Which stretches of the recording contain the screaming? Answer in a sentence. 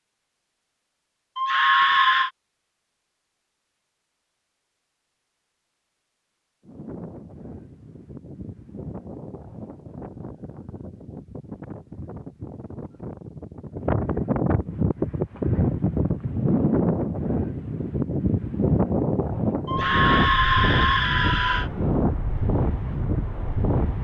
You can hear the screaming from 1.4 to 2.3 s and from 19.6 to 21.7 s.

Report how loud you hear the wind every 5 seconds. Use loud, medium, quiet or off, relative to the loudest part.
off, quiet, medium, loud, loud.